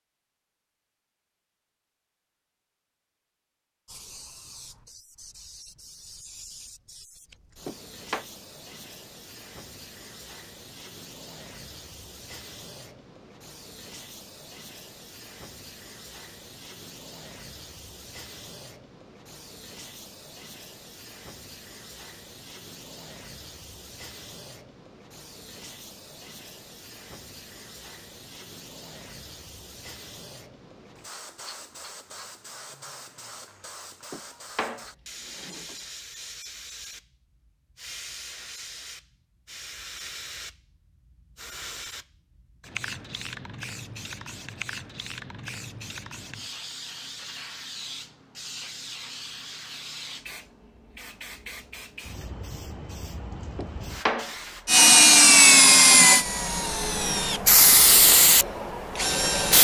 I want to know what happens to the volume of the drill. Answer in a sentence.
The loudness of the drill goes down, then up.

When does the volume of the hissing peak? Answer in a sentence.
The loudest moment of the hissing is at 58 seconds.